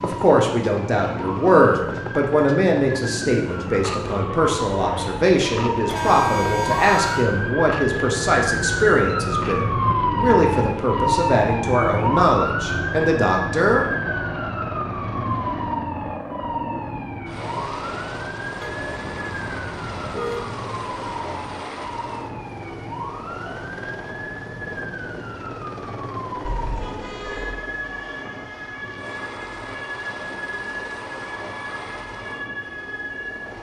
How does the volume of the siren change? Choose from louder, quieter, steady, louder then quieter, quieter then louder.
louder then quieter.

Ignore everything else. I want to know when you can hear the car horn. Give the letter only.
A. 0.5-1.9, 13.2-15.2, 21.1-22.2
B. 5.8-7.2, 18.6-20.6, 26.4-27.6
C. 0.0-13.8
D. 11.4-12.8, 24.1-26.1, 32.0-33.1
B.